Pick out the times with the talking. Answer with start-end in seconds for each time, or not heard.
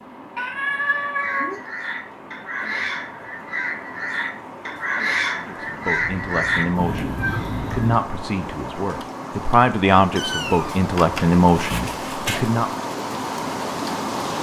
5.3-12.7.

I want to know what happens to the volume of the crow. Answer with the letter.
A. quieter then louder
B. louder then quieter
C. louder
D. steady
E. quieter
C.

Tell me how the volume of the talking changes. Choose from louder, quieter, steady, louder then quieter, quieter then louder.
louder.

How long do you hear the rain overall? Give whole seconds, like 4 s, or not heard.
14 s.